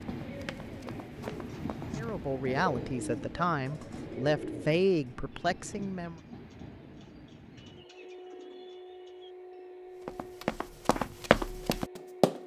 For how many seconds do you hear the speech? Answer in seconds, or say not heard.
4 s.